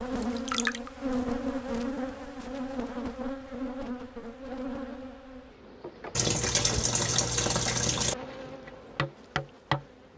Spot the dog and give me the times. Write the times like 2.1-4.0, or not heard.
not heard.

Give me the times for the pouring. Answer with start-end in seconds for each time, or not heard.
0.2-0.9, 6.2-8.2.